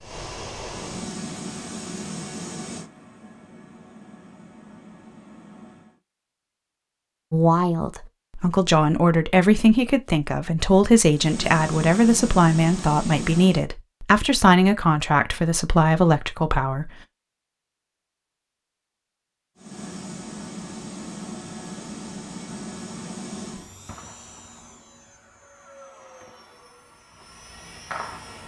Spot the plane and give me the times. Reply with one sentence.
The plane can be heard from 0.0 to 6.0 s, from 11.1 to 13.7 s and from 19.6 to 28.4 s.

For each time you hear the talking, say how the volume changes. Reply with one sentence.
The talking can be heard from 7.3 to 16.9 s, at a steady volume.